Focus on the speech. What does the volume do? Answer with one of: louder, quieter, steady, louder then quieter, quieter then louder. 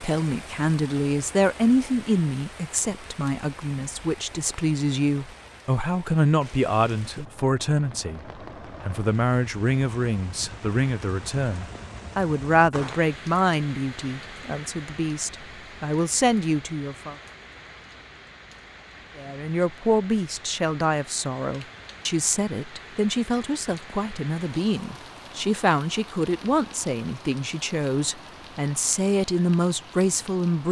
steady.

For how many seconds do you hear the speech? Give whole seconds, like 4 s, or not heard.
28 s.